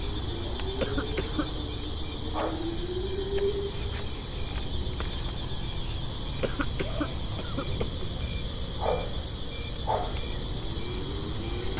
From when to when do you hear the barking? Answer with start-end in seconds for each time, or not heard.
not heard.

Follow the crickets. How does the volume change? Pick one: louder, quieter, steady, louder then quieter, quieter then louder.
steady.